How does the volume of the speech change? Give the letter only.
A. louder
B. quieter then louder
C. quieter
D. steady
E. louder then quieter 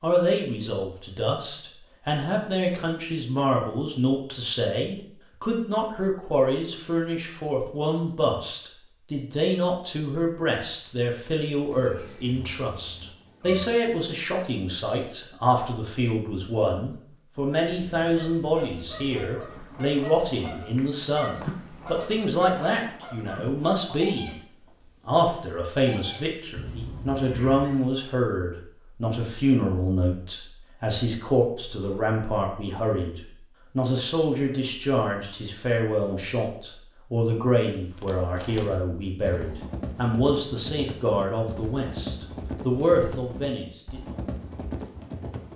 D.